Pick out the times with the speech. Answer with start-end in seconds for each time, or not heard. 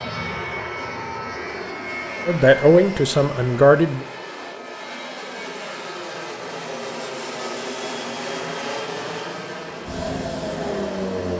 2.2-4.0.